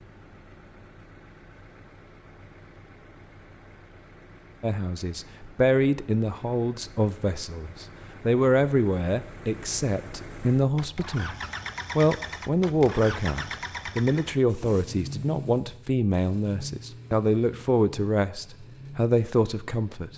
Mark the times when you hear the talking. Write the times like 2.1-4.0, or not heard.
4.6-11.3, 11.9-20.1.